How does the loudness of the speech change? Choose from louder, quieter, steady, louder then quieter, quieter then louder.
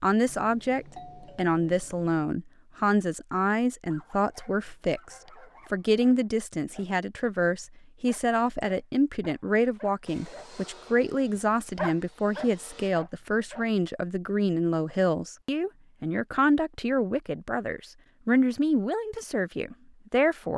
steady.